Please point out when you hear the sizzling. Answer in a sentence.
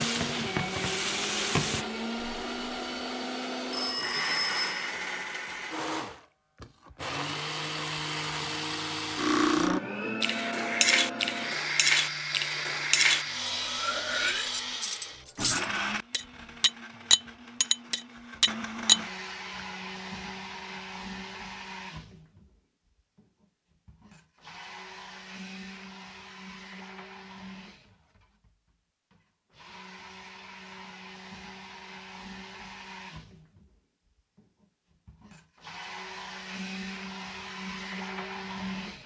You can hear the sizzling from 0.0 to 1.9 s.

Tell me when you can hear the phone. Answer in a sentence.
The phone can be heard from 3.7 to 4.8 s.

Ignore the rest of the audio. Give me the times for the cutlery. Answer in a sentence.
The cutlery can be heard from 9.2 to 19.0 s.